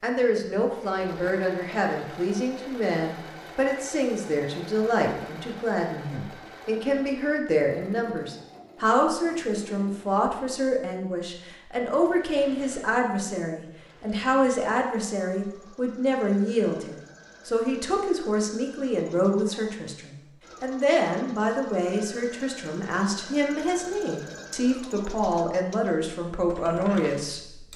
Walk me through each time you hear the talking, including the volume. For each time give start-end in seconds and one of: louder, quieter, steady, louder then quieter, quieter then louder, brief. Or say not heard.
0.0-27.7 steady.